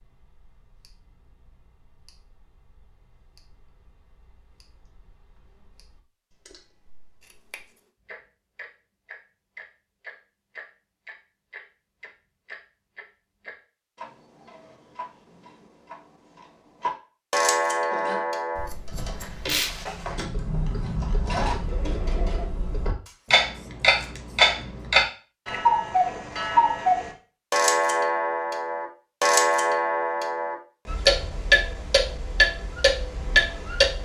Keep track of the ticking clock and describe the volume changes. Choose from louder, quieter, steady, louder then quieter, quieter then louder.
louder.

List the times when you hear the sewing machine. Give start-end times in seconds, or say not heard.
17.9-22.4.